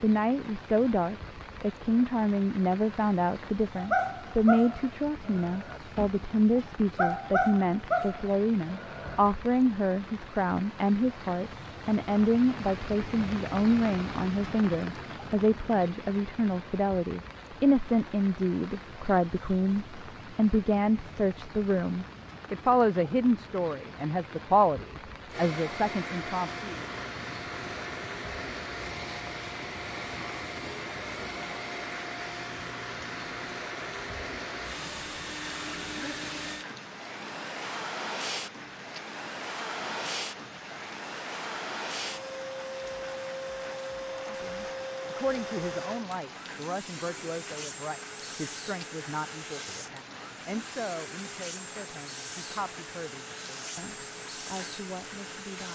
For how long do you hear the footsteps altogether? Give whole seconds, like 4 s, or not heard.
not heard.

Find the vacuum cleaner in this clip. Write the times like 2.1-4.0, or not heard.
25.3-55.6.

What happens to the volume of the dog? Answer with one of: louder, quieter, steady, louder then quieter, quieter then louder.
quieter then louder.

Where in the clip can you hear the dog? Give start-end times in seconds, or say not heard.
3.8-9.2.